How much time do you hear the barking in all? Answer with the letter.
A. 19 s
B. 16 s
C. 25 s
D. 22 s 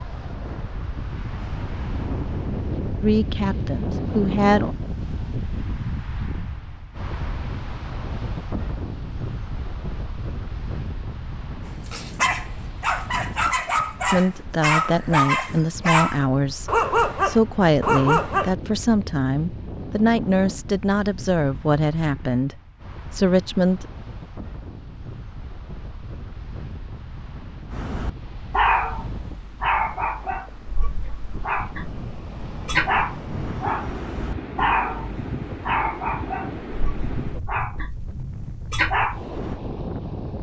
A.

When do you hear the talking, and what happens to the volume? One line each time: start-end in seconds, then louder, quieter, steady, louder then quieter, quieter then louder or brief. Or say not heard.
3.0-4.8 brief
14.1-23.9 steady.